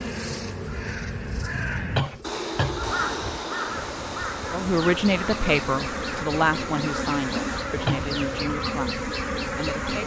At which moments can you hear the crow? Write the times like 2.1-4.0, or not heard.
0.0-8.4.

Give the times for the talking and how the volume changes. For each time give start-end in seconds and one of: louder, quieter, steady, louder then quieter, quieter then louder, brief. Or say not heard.
4.5-10.0 quieter.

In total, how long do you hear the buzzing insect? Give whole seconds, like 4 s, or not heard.
10 s.